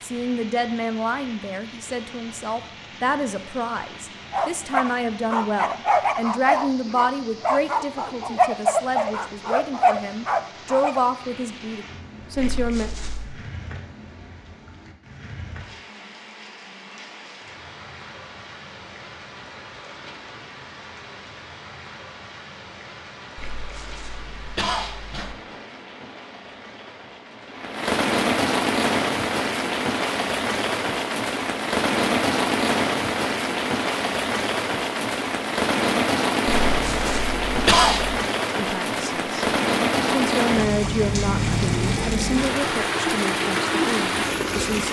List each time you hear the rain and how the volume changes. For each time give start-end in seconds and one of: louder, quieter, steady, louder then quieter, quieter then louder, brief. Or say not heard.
0.0-44.8 louder.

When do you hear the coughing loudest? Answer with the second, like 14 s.
38 s.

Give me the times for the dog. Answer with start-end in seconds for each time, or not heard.
4.3-11.0.